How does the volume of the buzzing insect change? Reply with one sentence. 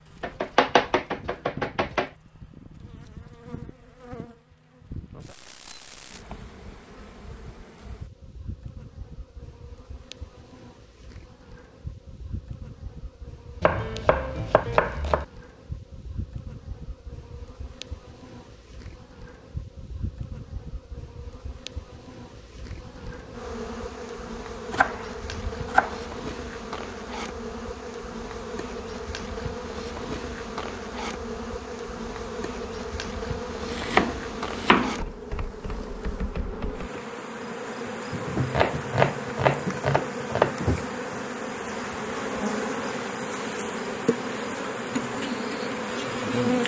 The volume of the buzzing insect goes up.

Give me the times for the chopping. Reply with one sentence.
The chopping can be heard from 0.2 to 2.1 s, from 13.6 to 15.2 s, from 24.7 to 26.0 s, from 33.6 to 35.0 s and from 38.5 to 40.5 s.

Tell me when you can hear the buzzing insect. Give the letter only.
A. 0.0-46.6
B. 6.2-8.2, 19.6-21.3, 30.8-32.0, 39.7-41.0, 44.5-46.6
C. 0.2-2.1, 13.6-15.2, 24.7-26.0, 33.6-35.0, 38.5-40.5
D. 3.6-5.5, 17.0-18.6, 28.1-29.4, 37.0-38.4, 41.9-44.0
A.